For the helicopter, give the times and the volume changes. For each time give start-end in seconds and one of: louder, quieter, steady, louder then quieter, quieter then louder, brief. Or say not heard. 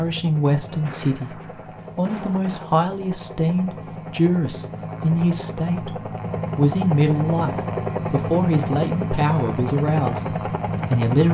0.0-11.2 louder.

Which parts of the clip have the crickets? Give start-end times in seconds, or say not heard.
not heard.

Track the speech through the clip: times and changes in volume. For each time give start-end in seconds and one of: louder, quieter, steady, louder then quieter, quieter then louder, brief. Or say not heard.
0.0-1.4 brief
1.9-11.2 steady.